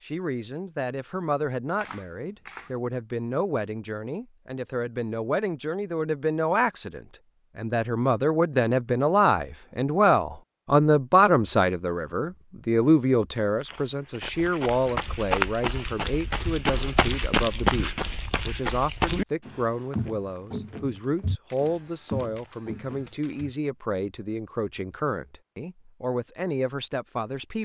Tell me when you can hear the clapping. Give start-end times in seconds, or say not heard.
not heard.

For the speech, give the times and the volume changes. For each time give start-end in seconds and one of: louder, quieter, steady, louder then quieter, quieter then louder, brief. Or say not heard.
0.0-27.6 louder then quieter.